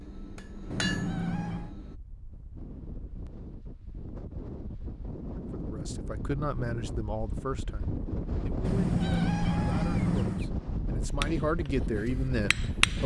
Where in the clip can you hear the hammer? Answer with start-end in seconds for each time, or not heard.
0.0-1.9, 11.1-13.0.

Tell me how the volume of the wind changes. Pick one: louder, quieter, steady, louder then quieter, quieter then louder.
louder.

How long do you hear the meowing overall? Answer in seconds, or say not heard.
3 s.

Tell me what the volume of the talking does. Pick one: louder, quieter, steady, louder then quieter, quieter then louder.
quieter then louder.